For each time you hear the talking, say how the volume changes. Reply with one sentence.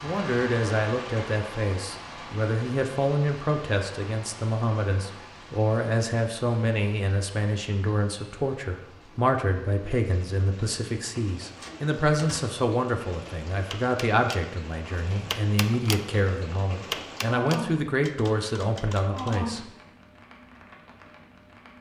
The talking can be heard from 0.0 to 19.6 s, at a steady volume.